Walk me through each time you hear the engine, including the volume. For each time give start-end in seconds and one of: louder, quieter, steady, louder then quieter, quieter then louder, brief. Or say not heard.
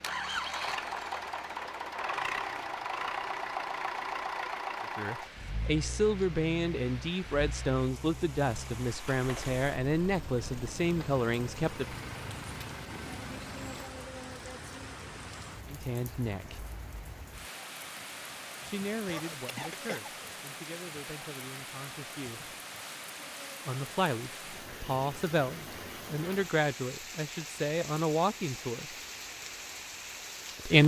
0.0-13.9 quieter.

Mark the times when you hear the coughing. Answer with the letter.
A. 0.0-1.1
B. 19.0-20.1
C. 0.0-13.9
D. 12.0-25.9
B.